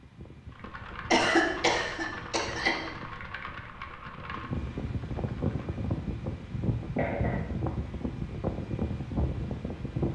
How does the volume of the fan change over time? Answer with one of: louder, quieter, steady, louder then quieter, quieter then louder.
louder.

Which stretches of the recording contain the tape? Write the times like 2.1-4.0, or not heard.
not heard.